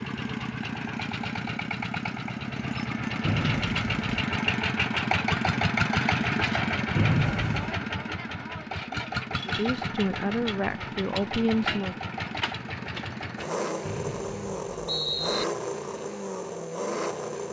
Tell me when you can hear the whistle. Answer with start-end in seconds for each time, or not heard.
3.2-4.1, 7.0-7.8, 13.8-15.4.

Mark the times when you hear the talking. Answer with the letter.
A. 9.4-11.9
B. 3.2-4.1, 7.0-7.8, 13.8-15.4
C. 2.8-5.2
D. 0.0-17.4
A.